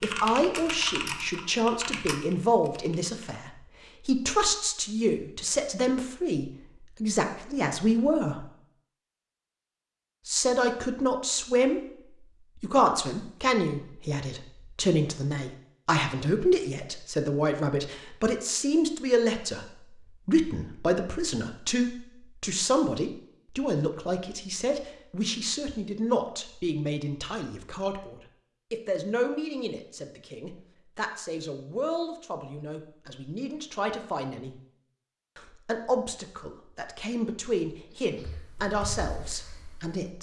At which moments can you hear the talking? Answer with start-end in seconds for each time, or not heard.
0.0-8.4, 10.2-11.8, 12.6-34.6, 35.4-40.1.